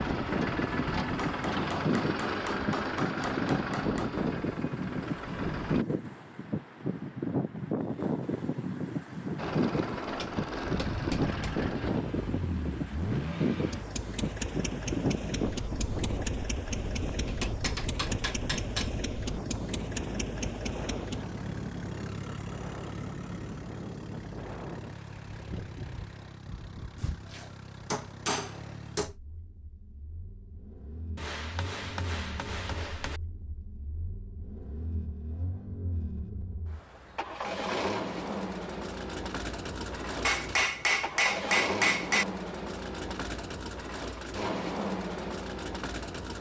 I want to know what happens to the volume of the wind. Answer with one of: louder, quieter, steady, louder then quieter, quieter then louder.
quieter.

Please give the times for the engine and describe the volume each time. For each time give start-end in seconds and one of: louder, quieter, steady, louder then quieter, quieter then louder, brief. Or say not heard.
0.0-5.8 quieter
9.3-46.3 quieter then louder.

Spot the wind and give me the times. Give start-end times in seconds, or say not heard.
0.0-29.0.